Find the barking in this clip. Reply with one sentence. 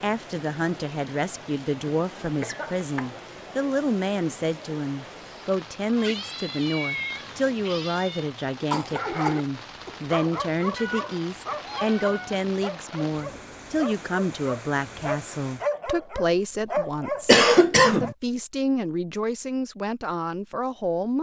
You can hear the barking from 8.9 to 9.4 s and from 10.1 to 18.1 s.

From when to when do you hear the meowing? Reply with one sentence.
The meowing can be heard from 5.8 to 8.2 s and from 10.8 to 12.3 s.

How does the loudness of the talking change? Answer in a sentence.
The volume of the talking stays about the same.